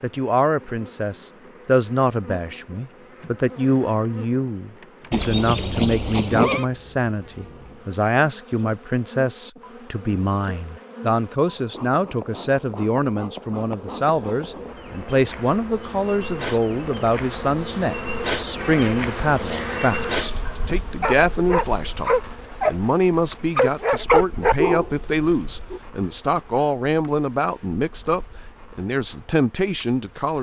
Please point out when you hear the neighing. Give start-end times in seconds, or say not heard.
5.1-6.7, 18.6-20.4.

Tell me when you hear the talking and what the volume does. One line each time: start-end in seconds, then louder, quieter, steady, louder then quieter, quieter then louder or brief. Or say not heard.
0.0-30.3 steady.